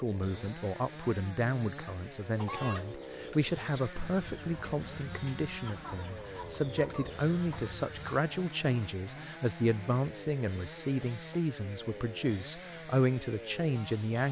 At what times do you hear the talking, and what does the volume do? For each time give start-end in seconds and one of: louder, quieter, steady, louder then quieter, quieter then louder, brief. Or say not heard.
0.0-14.2 steady.